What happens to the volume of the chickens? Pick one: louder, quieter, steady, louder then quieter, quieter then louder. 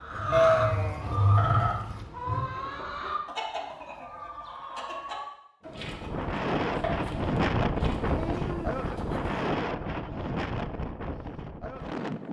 quieter.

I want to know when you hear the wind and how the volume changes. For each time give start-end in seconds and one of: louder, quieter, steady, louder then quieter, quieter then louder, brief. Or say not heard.
5.7-12.2 quieter.